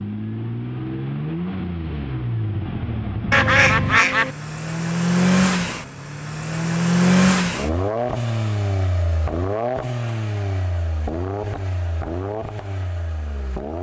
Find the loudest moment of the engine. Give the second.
7 s.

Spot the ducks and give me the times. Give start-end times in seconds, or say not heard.
3.3-4.3.